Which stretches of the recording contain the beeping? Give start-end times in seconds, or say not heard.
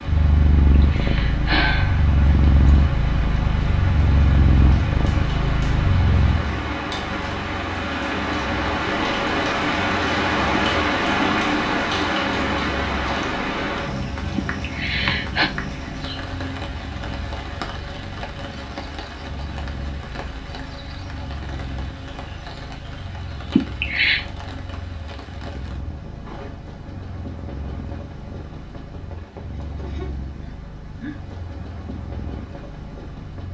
not heard.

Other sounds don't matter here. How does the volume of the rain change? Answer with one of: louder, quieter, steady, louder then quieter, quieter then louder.
louder then quieter.